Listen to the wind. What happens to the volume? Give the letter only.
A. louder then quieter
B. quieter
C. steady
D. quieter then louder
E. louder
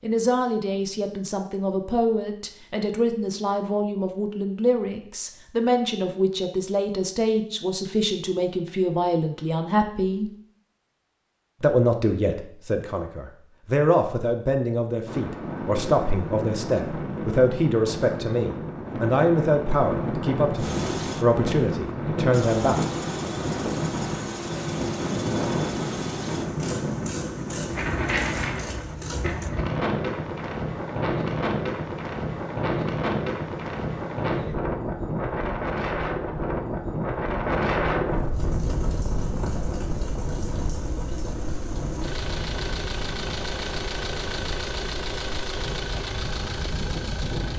B.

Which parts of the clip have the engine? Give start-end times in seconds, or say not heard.
20.6-29.5, 38.3-47.5.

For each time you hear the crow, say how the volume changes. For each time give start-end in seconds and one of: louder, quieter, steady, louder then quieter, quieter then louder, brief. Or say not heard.
not heard.